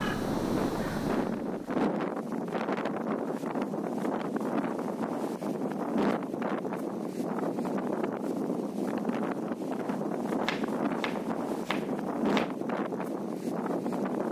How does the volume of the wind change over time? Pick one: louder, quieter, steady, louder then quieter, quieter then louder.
steady.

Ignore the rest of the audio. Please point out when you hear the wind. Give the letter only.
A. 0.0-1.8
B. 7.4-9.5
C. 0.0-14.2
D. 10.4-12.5
C.